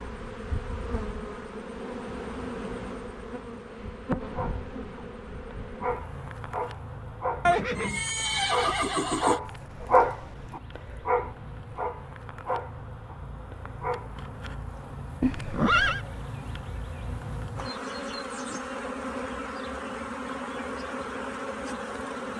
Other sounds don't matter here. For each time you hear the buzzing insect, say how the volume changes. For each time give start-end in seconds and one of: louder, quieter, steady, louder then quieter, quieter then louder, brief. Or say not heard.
0.0-22.3 quieter then louder.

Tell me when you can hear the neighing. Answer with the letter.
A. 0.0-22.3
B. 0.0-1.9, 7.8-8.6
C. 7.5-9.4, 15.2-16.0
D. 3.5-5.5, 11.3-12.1
C.